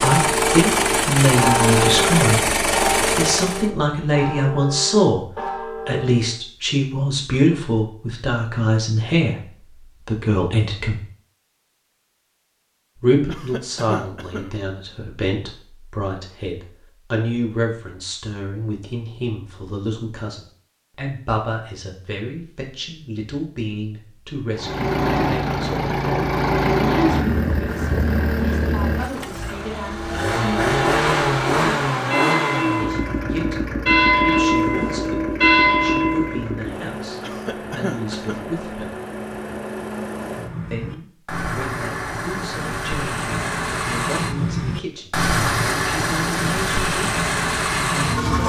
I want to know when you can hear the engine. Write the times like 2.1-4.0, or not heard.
0.0-3.7, 24.6-48.4.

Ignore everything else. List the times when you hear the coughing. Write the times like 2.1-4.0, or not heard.
13.2-14.6, 37.2-38.5.